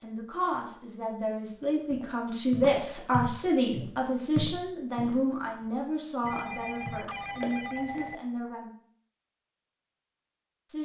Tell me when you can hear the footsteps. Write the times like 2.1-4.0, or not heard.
1.9-8.1.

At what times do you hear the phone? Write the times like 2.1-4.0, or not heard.
6.2-8.2.